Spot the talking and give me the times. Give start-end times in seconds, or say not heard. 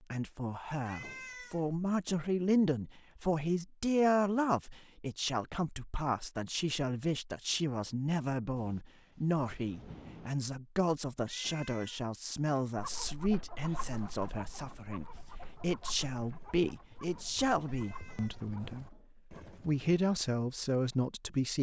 0.1-18.9, 19.6-21.5.